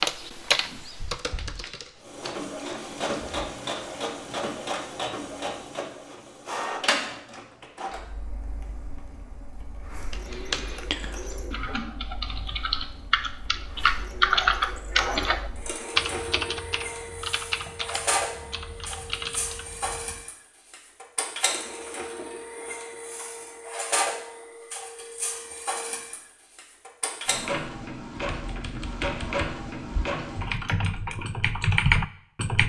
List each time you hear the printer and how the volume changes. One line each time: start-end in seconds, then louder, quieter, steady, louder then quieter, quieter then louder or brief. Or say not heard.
2.0-30.6 quieter then louder.